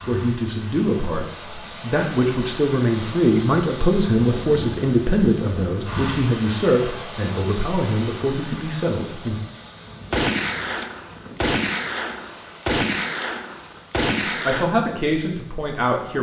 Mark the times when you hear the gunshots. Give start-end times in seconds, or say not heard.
10.1-14.7.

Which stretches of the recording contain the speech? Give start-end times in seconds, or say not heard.
0.1-9.3, 14.2-16.1.